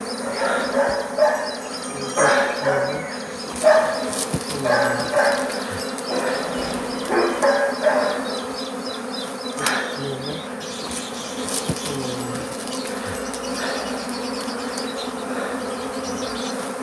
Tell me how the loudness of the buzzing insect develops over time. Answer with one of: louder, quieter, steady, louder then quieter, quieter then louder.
steady.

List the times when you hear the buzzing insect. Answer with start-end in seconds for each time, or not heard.
0.0-16.7.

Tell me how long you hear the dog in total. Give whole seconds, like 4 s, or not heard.
8 s.